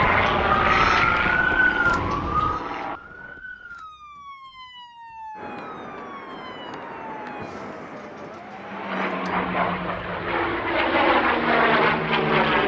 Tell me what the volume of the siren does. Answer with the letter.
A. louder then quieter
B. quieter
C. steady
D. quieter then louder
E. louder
B.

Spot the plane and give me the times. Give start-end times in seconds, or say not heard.
0.0-3.4, 5.3-12.6.